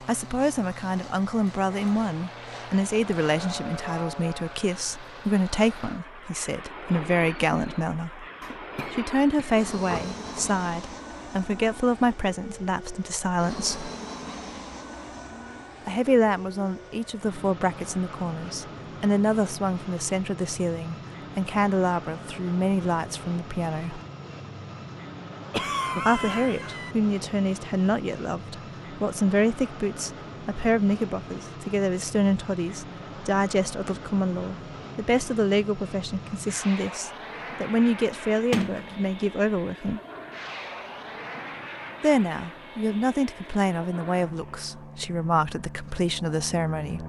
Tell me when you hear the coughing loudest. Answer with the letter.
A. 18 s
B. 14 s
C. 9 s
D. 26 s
D.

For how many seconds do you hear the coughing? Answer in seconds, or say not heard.
3 s.